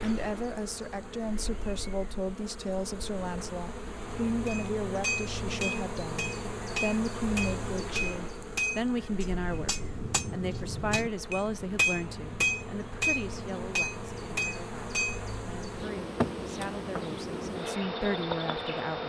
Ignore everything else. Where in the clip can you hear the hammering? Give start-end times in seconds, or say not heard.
4.5-15.2.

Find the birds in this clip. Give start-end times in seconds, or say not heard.
not heard.